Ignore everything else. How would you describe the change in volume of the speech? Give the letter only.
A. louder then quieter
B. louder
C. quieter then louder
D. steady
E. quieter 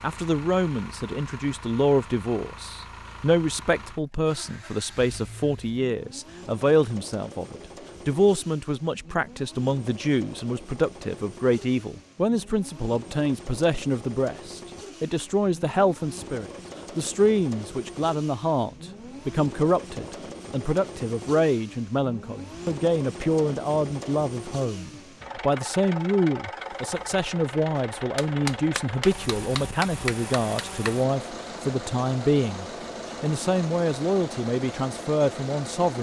D.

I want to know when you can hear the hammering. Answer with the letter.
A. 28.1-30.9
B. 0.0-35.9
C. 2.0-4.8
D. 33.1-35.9
A.